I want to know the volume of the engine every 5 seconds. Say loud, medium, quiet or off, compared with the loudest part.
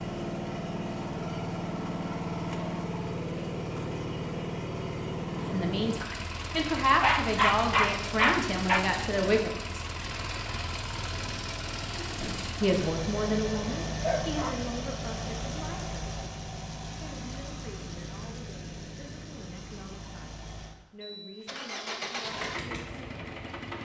loud, loud, loud, medium, medium.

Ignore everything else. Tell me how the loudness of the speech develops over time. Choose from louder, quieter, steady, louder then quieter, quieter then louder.
quieter.